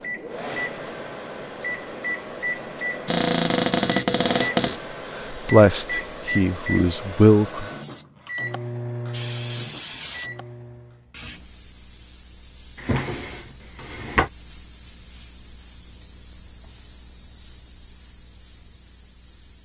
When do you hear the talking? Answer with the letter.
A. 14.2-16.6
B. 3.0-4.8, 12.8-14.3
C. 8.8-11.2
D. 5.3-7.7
D.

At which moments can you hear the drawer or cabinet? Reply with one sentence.
The drawer or cabinet can be heard from 3.0 to 4.8 s and from 12.8 to 14.3 s.